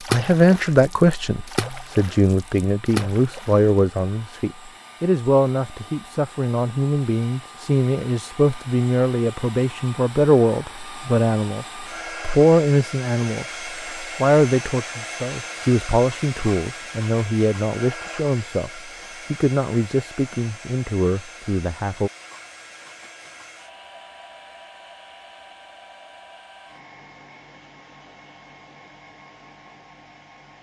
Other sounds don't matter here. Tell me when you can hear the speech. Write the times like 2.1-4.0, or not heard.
0.1-22.1.